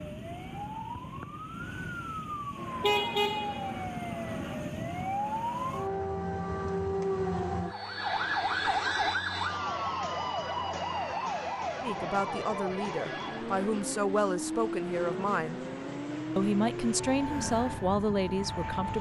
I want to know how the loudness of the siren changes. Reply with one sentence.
The volume of the siren goes up, then down.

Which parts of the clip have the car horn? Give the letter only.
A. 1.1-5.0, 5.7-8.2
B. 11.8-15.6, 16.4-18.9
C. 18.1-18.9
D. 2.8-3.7
D.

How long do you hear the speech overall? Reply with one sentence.
The speech can be heard for 6 seconds in total.